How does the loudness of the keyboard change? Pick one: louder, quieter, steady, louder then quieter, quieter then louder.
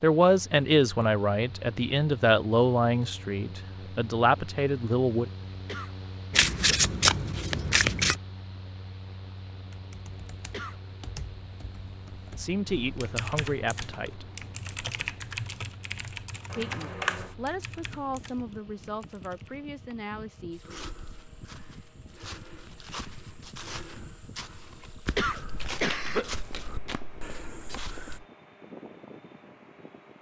louder then quieter.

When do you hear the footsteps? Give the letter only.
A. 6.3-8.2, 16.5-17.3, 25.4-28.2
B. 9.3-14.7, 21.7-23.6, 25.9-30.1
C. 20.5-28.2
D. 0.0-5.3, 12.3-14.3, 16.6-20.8
C.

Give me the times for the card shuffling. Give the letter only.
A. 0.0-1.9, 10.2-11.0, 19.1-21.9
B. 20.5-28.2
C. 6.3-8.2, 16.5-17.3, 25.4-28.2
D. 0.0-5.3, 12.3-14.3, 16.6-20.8
C.